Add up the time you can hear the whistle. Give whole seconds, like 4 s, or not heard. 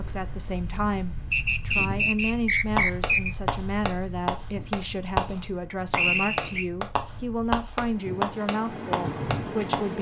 3 s.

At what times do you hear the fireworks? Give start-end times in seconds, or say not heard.
2.8-9.9.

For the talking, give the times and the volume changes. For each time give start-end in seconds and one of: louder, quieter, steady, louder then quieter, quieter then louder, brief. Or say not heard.
0.0-9.9 steady.